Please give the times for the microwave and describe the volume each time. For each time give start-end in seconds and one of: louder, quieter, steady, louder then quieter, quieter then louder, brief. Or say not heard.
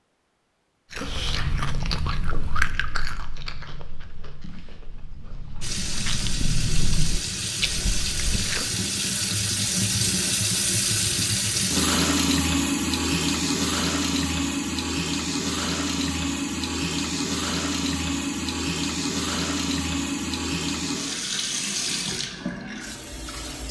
not heard.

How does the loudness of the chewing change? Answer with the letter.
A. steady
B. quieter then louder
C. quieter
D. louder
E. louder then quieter
B.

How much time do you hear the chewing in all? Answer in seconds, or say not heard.
8 s.